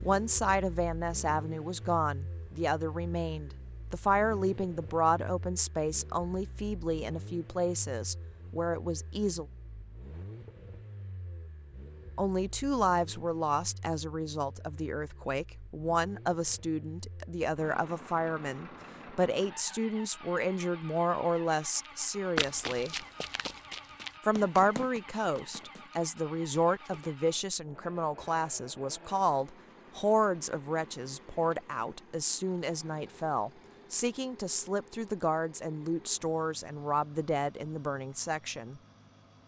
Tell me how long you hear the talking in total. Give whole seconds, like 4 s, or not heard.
35 s.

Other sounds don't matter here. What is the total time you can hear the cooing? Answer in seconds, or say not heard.
not heard.